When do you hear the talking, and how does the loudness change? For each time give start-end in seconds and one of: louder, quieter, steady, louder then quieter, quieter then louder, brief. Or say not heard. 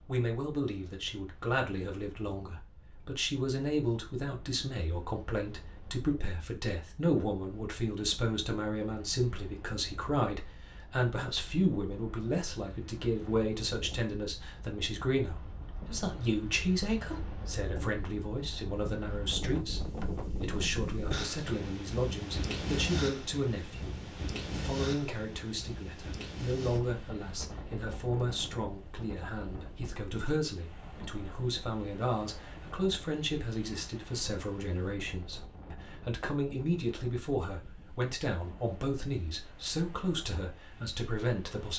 0.1-41.7 steady.